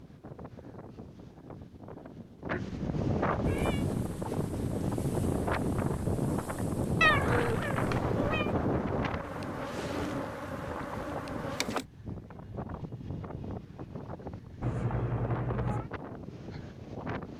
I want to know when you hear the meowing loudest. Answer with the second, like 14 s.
7 s.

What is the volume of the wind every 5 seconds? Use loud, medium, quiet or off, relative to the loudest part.
loud, loud, medium, medium.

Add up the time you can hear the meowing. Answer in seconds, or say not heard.
4 s.